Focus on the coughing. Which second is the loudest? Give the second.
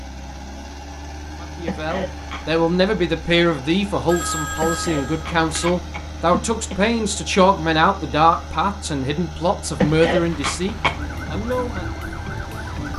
10 s.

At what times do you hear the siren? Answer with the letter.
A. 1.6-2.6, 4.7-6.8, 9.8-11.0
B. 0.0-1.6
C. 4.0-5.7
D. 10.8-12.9
D.